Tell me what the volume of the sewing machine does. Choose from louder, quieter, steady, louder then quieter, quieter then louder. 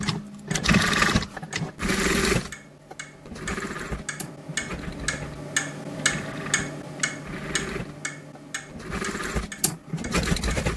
quieter then louder.